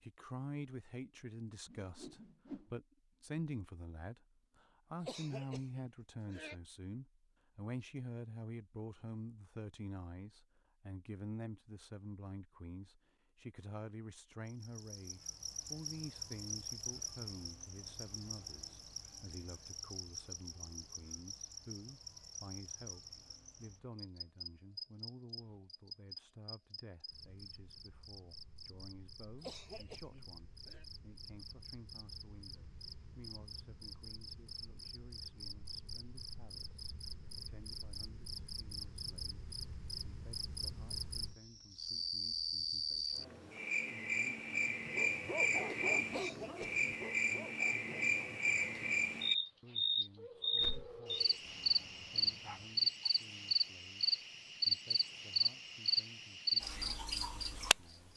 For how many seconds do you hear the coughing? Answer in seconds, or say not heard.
4 s.